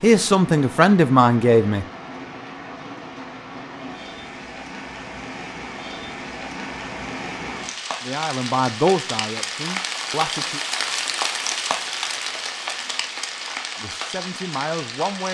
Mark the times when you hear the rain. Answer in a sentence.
You can hear the rain from 0.0 to 15.2 s.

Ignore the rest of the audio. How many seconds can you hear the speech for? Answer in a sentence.
The speech can be heard for 6 seconds in total.